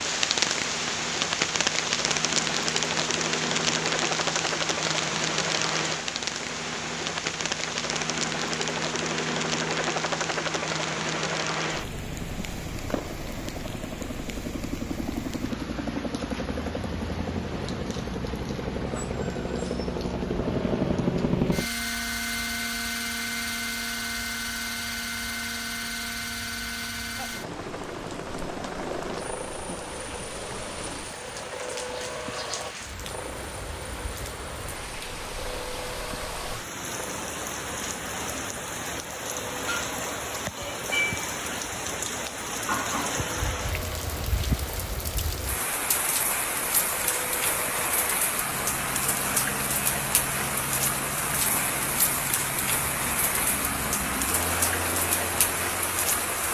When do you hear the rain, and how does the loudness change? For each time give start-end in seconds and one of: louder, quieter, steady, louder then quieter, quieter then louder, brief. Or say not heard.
0.0-56.4 quieter then louder.